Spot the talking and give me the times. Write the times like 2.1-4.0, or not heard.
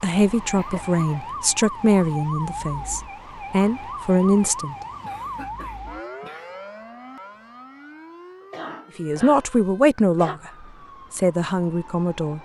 0.0-4.8, 8.9-12.4.